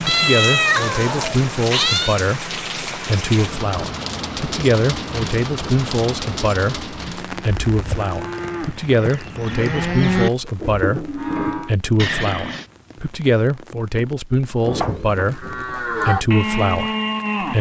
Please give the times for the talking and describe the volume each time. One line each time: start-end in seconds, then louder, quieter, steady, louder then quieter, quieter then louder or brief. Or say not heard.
0.0-17.5 steady.